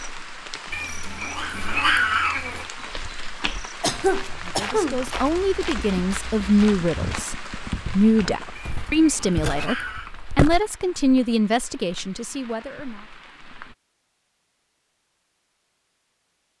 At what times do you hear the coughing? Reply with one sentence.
You can hear the coughing from 3.8 to 5.0 s.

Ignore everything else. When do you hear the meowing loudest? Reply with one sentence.
The loudest moment of the meowing is at 2 seconds.